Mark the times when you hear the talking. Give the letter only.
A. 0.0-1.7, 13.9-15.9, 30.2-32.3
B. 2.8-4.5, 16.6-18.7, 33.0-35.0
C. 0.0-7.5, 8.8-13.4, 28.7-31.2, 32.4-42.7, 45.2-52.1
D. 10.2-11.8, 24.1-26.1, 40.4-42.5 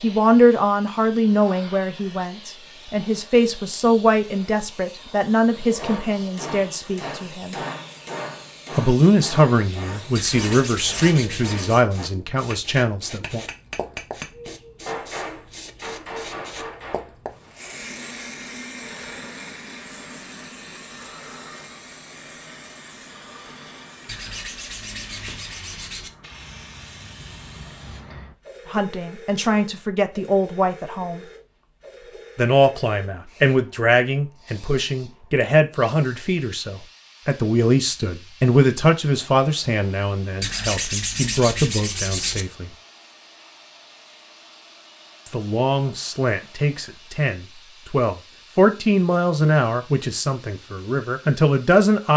C.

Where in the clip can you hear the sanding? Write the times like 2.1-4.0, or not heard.
10.2-11.8, 24.1-26.1, 40.4-42.5.